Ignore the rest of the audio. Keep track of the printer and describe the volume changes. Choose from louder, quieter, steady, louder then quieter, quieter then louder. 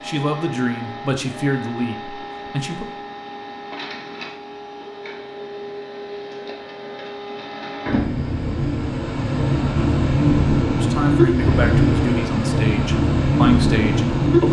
louder.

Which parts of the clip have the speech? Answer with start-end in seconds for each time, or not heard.
0.0-2.9, 10.8-14.4.